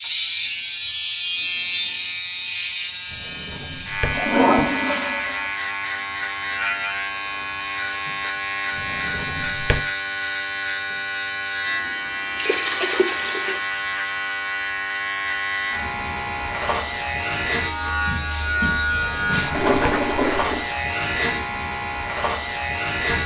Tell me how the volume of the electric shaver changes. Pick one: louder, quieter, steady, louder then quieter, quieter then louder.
steady.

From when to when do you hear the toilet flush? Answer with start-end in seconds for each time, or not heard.
4.1-5.5, 11.8-13.7, 19.5-20.7.